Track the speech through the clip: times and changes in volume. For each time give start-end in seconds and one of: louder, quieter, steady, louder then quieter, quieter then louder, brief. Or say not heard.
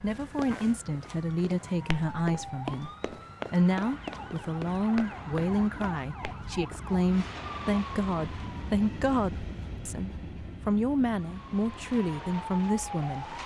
0.0-2.9 brief
3.5-13.4 steady.